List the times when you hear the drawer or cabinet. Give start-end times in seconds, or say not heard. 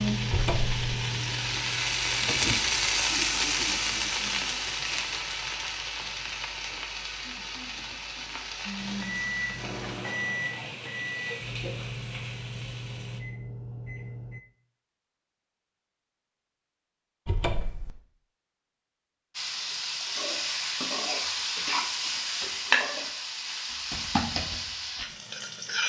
0.3-0.8, 17.2-17.9.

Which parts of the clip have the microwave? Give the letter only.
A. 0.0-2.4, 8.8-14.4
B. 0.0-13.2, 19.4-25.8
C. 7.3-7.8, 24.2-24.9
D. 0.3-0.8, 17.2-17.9
A.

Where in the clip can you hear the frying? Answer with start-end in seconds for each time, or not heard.
0.0-13.2, 19.4-25.8.